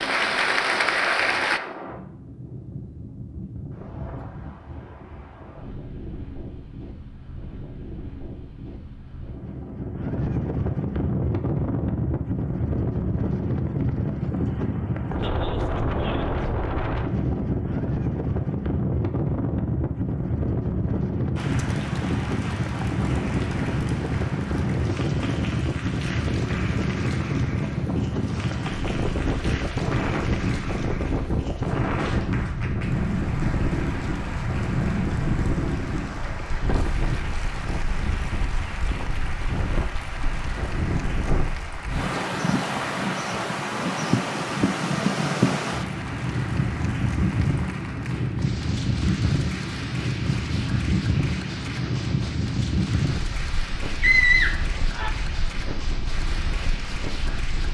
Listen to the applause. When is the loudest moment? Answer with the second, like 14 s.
1 s.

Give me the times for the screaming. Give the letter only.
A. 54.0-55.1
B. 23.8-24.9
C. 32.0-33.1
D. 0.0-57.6
A.